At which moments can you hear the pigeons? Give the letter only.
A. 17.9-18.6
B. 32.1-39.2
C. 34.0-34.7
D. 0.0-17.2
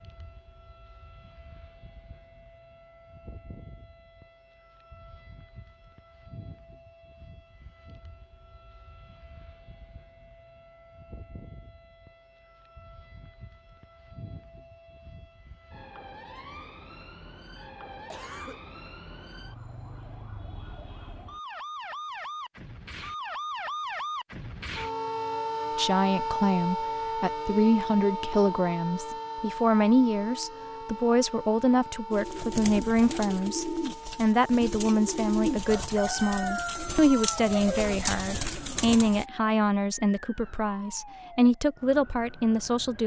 B.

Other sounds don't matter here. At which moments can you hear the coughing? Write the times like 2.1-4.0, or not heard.
17.9-18.6.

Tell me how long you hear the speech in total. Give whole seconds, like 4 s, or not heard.
17 s.